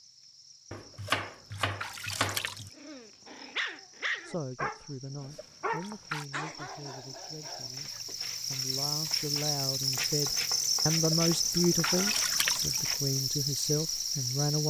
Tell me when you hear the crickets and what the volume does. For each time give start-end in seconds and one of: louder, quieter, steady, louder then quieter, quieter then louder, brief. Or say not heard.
0.0-14.6 louder.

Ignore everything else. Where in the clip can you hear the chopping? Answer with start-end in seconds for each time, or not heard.
0.7-2.7, 9.9-11.7.